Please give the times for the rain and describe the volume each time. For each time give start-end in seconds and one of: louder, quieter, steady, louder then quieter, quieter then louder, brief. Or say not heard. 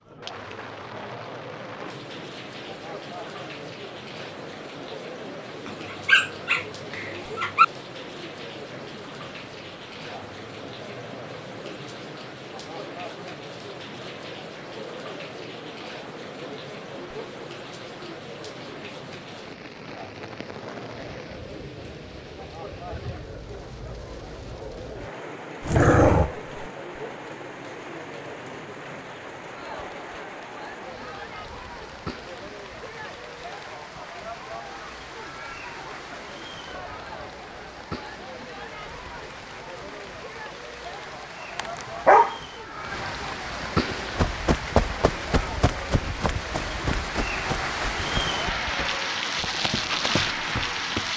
0.0-51.1 louder.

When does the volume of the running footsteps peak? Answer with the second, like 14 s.
45 s.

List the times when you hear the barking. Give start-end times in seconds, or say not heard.
5.7-7.7, 25.6-26.6, 41.5-42.4.